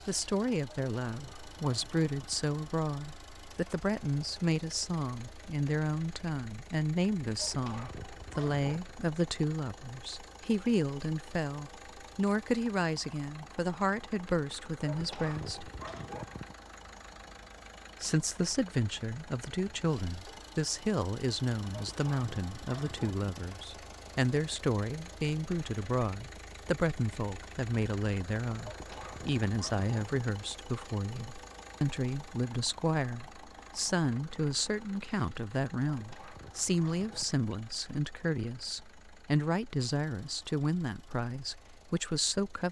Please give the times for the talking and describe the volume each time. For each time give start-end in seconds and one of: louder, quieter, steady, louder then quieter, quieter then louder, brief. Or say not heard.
0.1-15.7 steady
18.0-42.6 steady.